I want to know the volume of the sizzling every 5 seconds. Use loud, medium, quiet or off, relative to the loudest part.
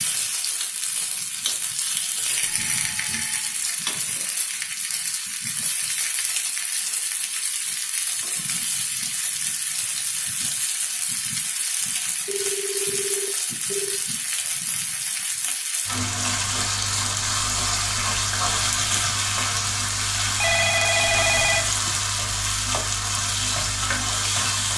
medium, medium, medium, loud, loud.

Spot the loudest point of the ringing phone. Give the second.
21 s.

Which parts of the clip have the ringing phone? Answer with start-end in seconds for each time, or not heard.
2.4-3.5, 12.2-13.9, 20.2-21.9.